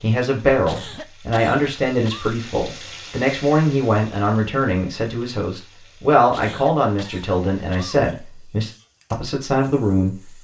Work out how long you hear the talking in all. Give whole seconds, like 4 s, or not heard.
10 s.